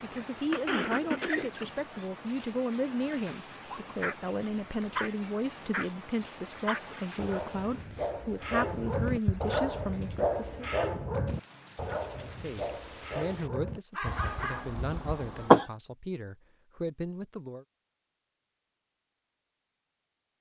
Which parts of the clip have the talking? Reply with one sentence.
You can hear the talking from 0.0 to 10.7 s and from 12.1 to 17.6 s.